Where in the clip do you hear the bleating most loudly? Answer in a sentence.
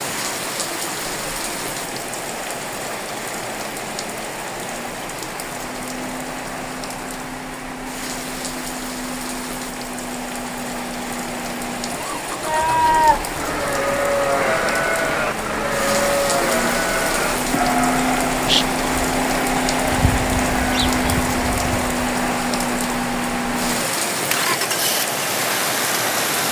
The volume of the bleating peaks at 13 seconds.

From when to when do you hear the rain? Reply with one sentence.
You can hear the rain from 0.0 to 26.4 s.